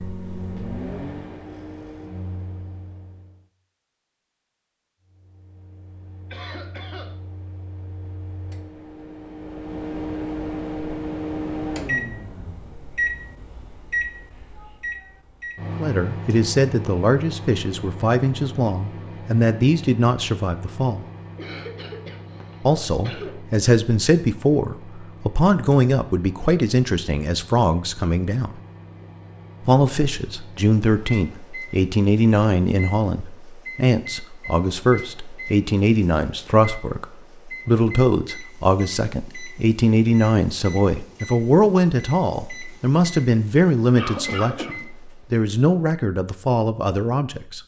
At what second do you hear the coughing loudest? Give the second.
44 s.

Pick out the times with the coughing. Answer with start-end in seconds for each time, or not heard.
6.3-7.1, 21.4-23.4, 44.0-44.9.